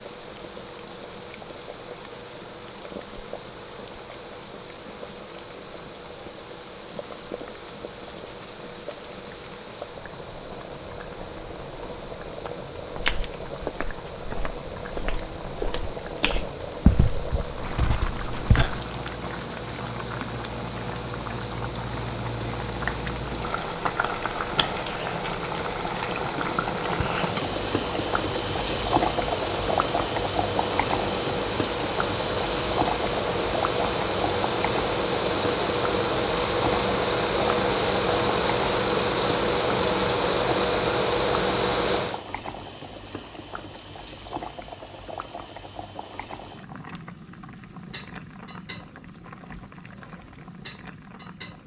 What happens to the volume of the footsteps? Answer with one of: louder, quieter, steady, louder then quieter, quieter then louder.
louder then quieter.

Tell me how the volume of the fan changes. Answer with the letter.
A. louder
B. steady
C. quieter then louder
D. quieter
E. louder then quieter
A.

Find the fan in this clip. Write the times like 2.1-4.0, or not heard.
0.0-42.2.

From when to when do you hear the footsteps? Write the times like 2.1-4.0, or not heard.
12.8-18.8.